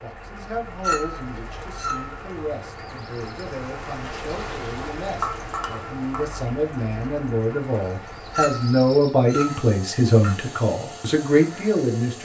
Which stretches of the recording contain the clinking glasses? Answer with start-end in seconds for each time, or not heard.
0.8-2.2, 5.2-6.4, 8.3-10.3.